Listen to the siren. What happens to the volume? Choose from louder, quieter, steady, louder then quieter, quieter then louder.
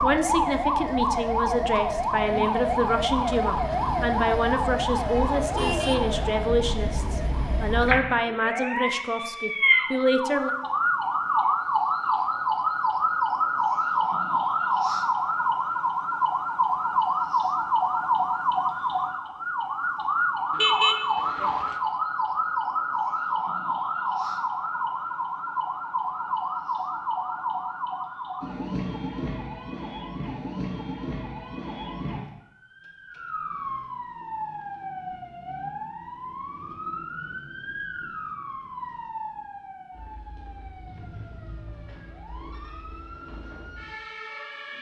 quieter.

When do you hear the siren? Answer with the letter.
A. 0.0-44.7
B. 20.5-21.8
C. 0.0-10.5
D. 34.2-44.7
A.